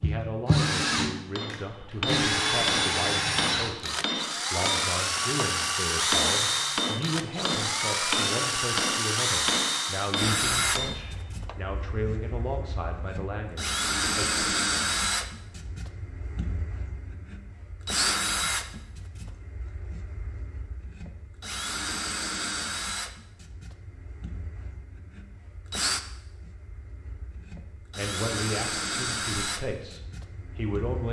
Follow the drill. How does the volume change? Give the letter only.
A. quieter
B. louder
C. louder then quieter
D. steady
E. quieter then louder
A.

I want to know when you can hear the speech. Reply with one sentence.
The speech can be heard from 0.0 to 14.4 s and from 27.9 to 31.0 s.